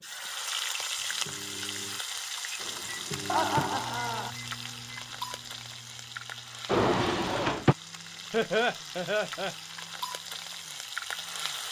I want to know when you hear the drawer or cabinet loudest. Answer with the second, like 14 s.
7 s.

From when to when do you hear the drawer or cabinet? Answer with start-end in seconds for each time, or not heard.
2.6-3.9, 6.7-7.8.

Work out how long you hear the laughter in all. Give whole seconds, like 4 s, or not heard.
2 s.